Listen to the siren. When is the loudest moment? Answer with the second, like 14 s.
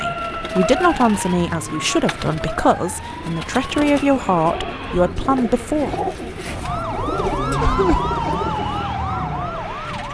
8 s.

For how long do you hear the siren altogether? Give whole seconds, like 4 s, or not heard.
9 s.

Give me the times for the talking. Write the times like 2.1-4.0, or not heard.
0.0-5.9.